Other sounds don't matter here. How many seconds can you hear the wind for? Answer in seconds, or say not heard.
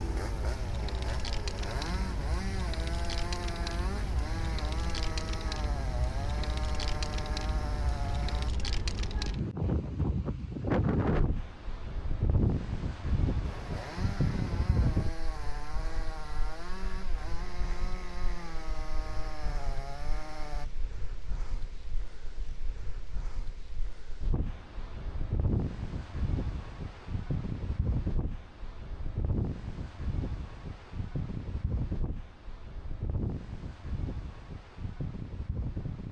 36 s.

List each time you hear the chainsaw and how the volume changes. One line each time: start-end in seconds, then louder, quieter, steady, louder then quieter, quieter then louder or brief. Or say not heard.
0.0-8.5 steady
13.4-20.7 steady.